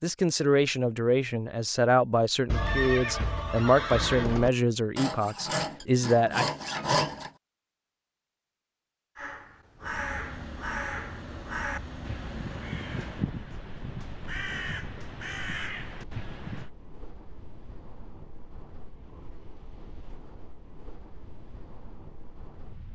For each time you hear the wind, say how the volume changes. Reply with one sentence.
You can hear the wind from 9.8 to 22.9 s, getting quieter.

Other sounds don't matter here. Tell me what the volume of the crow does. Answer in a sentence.
The volume of the crow stays about the same.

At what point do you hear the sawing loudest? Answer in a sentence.
The loudest moment of the sawing is at 7 seconds.